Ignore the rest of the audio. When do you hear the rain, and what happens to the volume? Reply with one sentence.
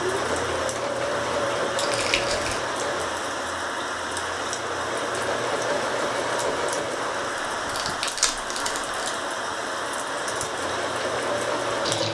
The rain can be heard from 0.0 to 12.0 s, at a steady volume.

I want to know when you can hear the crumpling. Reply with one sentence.
The crumpling can be heard from 1.8 to 2.6 s and from 7.6 to 8.9 s.